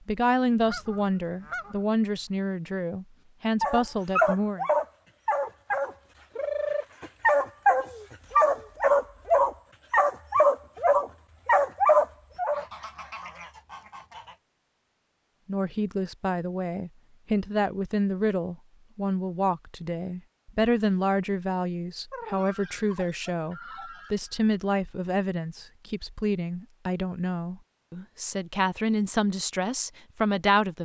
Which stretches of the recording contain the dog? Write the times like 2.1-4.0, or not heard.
3.6-12.7.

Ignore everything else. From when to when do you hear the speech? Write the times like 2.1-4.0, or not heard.
0.1-4.7, 15.4-30.8.